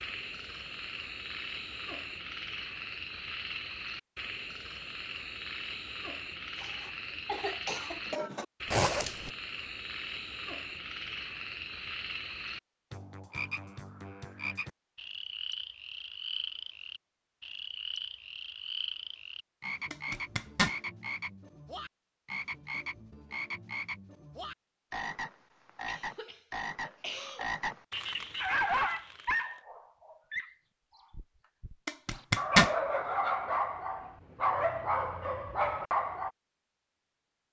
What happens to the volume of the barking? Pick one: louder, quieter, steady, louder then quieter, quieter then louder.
quieter then louder.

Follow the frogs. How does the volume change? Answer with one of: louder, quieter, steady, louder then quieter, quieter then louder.
steady.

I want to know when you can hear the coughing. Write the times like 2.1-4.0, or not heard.
6.5-8.4, 25.9-27.4.